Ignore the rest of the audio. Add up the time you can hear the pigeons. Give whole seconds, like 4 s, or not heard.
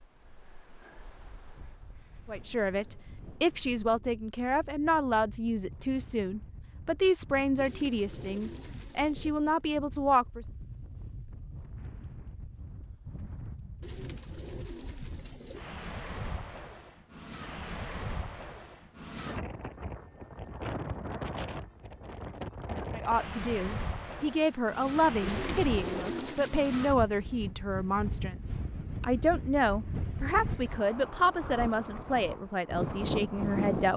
5 s.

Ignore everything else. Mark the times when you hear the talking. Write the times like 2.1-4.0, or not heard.
2.2-10.4, 22.9-33.9.